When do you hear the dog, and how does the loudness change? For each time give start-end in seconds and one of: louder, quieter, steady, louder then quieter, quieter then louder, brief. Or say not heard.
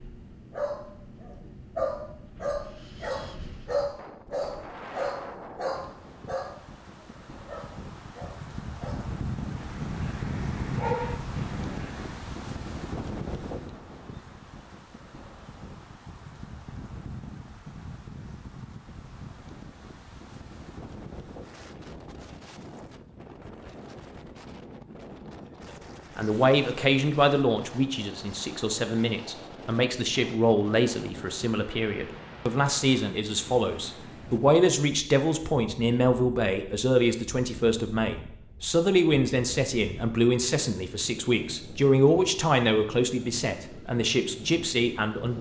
0.5-12.2 quieter then louder.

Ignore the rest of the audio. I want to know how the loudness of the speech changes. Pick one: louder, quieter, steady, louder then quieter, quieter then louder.
steady.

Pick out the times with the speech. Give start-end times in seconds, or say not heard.
26.1-45.3.